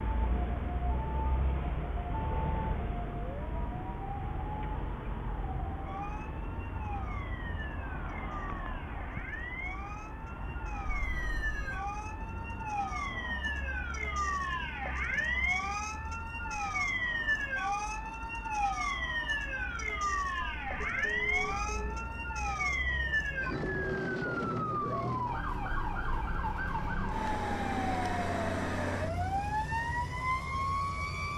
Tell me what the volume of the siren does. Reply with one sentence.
The loudness of the siren goes up.